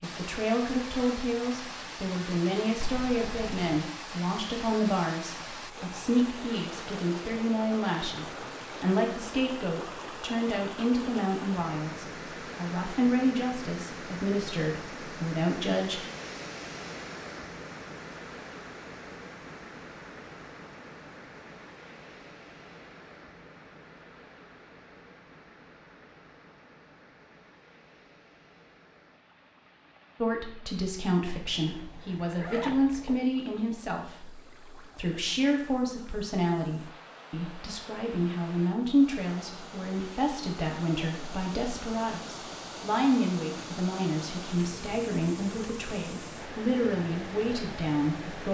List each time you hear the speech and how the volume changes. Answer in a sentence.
You can hear the speech from 0.0 to 16.0 s, at a steady volume; and from 30.2 to 48.5 s, at a steady volume.